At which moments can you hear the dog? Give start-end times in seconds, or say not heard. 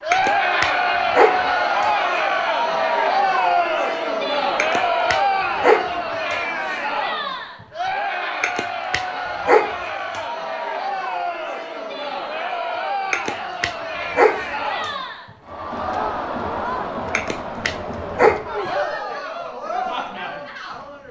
0.1-1.9, 4.5-6.3, 8.4-10.2, 13.1-14.9, 17.1-18.4.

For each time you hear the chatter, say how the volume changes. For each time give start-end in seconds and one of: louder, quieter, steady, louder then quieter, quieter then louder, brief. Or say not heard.
0.0-21.0 quieter.